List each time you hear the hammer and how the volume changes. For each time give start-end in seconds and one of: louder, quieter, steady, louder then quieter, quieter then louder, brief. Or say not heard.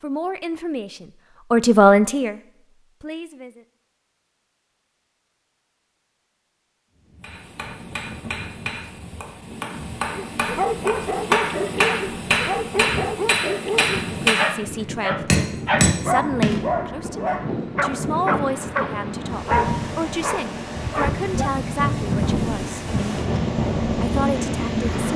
7.2-16.6 louder.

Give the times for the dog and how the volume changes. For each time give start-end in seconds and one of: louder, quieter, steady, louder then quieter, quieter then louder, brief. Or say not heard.
10.1-21.6 steady.